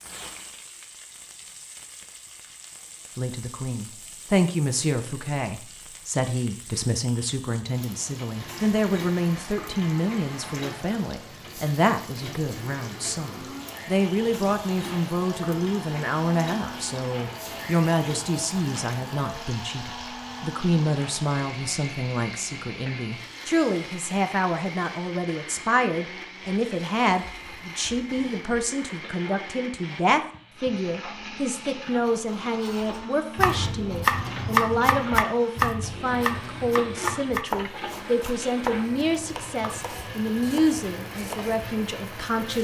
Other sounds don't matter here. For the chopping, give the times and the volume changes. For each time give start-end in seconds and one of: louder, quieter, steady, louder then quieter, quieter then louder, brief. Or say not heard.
32.6-41.5 quieter.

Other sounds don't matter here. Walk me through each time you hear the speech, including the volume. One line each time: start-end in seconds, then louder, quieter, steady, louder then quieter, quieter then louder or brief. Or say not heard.
3.1-42.5 steady.